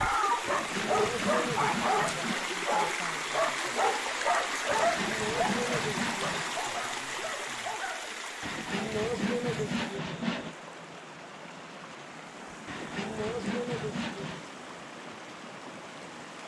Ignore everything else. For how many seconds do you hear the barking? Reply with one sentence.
You can hear the barking for 8 seconds altogether.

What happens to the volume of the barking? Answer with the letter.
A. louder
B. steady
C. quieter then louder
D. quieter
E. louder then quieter
D.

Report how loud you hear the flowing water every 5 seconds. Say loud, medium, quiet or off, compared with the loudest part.
loud, loud, medium, medium.